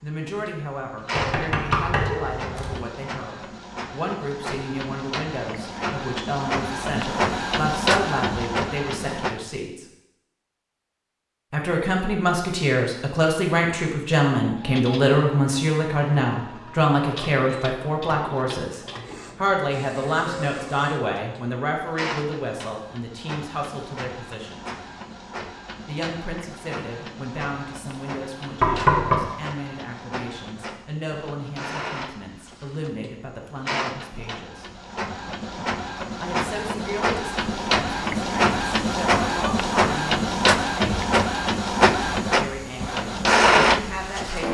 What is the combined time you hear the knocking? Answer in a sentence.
You can hear the knocking for 2 seconds altogether.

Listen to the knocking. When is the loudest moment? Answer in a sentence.
The loudest moment of the knocking is at 29 seconds.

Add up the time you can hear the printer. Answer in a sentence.
The printer can be heard for 39 seconds in total.